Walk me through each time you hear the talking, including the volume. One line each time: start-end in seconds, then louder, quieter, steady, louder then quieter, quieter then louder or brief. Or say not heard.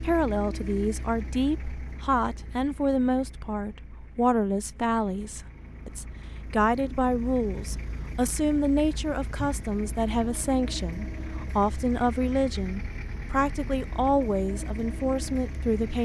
0.0-16.0 steady.